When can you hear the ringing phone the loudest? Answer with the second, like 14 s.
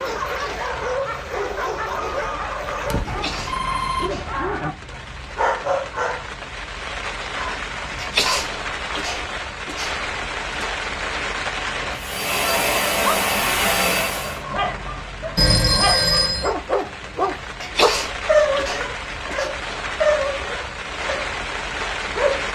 16 s.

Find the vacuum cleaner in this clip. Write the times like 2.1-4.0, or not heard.
11.9-14.4.